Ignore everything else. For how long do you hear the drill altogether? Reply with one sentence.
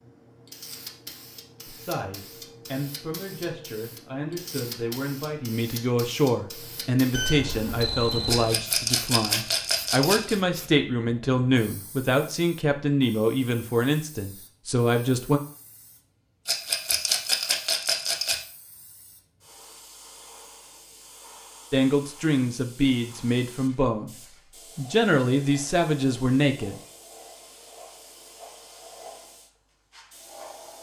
You can't hear the drill here.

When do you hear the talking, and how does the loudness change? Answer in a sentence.
You can hear the talking from 1.6 to 15.4 s, getting louder; briefly from 21.7 to 24.1 s; and briefly from 24.8 to 26.8 s.